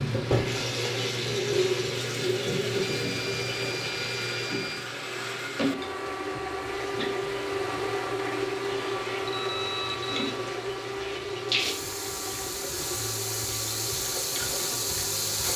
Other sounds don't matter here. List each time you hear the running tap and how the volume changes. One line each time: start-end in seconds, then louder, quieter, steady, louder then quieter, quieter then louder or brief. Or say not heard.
0.0-15.5 quieter then louder.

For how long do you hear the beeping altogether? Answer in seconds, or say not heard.
3 s.